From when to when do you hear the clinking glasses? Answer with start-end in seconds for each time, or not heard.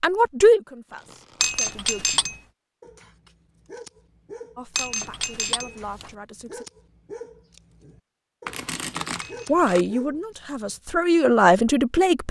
1.4-2.4, 4.8-6.1, 9.2-9.7.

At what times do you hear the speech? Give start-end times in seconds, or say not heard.
0.0-2.0, 4.5-6.7, 9.4-12.2.